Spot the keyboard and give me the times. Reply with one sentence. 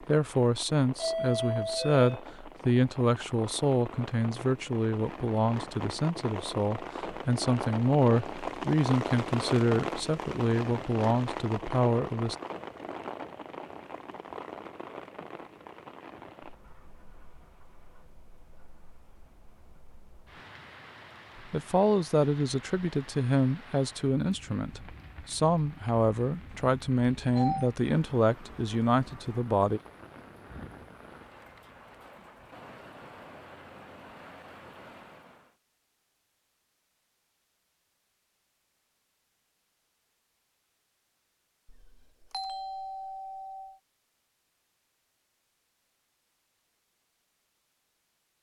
You can't hear the keyboard here.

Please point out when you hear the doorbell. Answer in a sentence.
You can hear the doorbell from 0.9 to 2.2 s, from 26.5 to 27.7 s and from 41.6 to 43.8 s.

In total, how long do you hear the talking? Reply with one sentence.
The talking can be heard for 21 seconds in total.